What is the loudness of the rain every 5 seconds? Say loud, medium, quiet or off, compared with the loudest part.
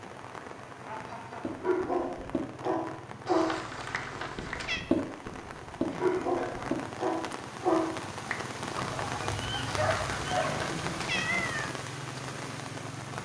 medium, loud, loud.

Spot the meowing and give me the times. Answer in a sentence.
You can hear the meowing from 3.2 to 4.8 s and from 9.7 to 11.7 s.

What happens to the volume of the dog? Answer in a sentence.
The volume of the dog goes down.